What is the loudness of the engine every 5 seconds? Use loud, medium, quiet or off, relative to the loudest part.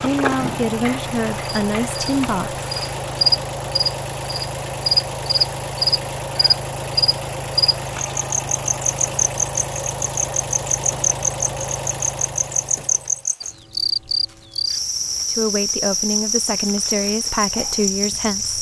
loud, loud, loud, off.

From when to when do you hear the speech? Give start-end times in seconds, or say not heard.
0.0-2.6, 15.3-18.5.